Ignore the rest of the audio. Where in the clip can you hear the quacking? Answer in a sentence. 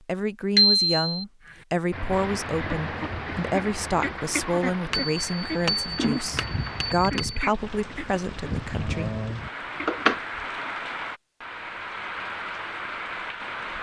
The quacking can be heard from 1.4 to 10.2 s.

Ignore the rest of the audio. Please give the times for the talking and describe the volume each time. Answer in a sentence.
The talking can be heard from 0.1 to 9.1 s, at a steady volume.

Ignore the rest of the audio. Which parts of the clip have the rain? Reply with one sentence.
You can hear the rain from 2.1 to 13.7 s.